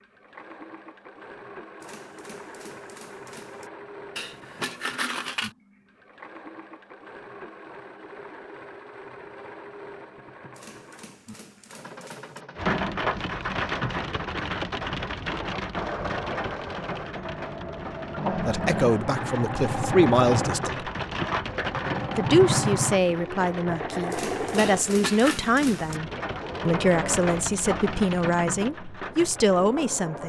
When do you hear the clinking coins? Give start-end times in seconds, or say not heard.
4.2-5.5, 24.6-25.4.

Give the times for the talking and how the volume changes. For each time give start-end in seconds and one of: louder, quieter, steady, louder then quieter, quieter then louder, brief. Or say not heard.
18.3-20.9 brief
22.1-30.2 steady.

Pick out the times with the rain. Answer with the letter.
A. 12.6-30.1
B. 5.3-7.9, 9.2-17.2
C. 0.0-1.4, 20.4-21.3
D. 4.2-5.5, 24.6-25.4
A.